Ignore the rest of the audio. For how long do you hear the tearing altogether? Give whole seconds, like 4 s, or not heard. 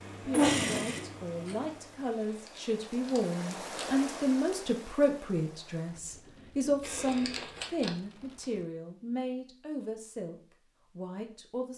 3 s.